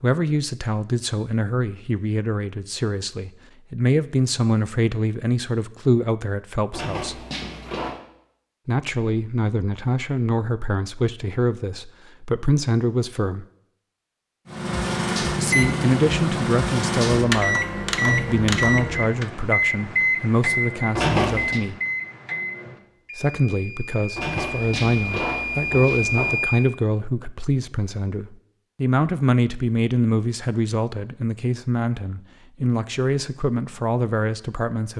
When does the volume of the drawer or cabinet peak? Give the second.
21 s.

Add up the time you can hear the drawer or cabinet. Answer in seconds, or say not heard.
4 s.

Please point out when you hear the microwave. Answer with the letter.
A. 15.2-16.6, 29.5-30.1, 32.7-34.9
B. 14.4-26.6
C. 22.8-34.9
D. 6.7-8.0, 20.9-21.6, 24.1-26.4
B.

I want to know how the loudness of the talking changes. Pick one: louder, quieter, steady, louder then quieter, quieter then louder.
steady.